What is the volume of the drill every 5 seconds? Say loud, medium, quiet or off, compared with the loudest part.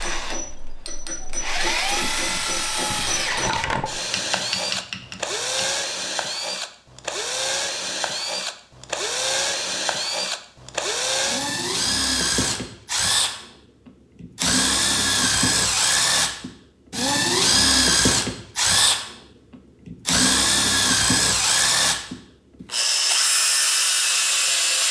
medium, medium, loud, loud, loud.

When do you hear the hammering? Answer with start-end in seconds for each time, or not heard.
0.0-5.7.